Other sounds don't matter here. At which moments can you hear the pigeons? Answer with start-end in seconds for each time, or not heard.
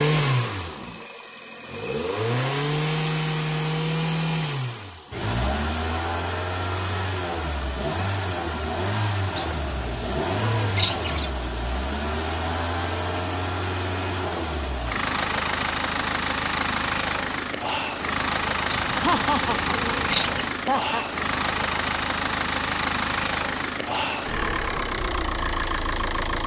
9.3-11.3, 18.7-20.5.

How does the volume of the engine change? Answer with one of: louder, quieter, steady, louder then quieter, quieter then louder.
steady.